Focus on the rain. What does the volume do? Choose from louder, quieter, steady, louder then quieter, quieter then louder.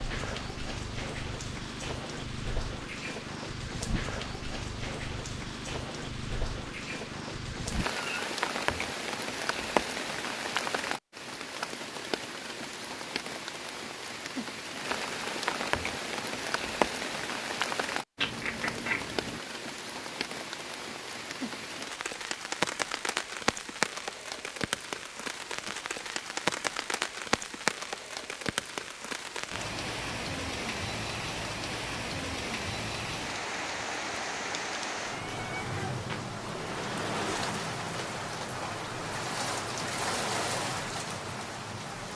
steady.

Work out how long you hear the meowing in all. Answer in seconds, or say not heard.
3 s.